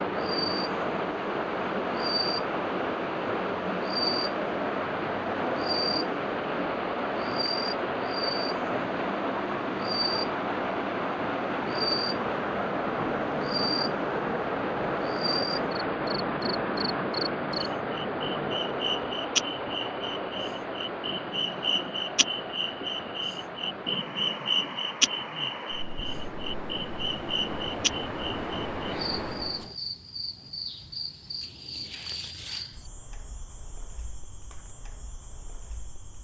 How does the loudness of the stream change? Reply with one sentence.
The volume of the stream goes down.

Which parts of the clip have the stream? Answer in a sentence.
You can hear the stream from 0.0 to 29.8 s.